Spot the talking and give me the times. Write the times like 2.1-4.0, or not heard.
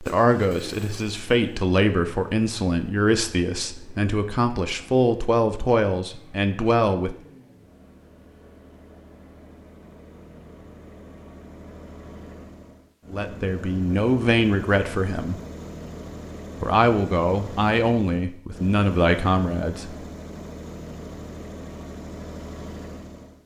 0.0-7.2, 13.1-15.4, 16.6-19.9.